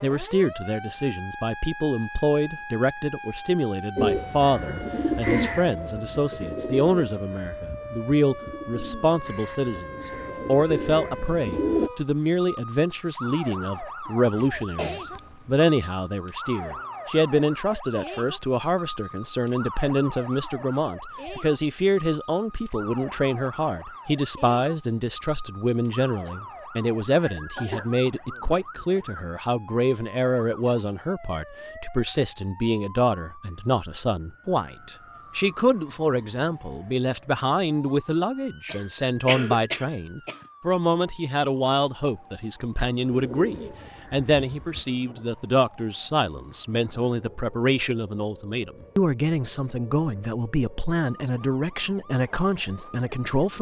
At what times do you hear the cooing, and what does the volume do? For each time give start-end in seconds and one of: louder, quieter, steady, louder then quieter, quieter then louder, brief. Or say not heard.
4.0-11.9 quieter then louder
43.1-44.9 brief.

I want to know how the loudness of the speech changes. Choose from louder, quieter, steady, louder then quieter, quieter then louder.
steady.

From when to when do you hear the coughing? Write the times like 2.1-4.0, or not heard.
14.3-15.7, 27.6-28.1, 38.6-40.4.